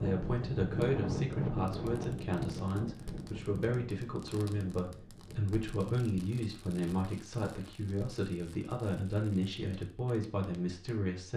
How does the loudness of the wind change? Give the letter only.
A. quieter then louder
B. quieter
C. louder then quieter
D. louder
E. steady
B.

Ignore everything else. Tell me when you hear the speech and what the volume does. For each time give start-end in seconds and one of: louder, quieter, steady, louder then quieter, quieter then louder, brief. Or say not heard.
0.0-11.3 steady.